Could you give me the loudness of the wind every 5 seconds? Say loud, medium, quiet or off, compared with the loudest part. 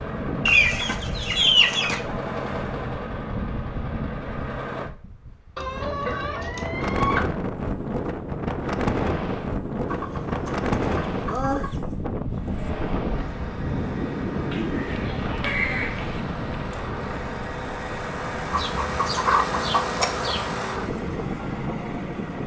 medium, loud, loud, medium, medium.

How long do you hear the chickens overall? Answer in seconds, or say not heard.
9 s.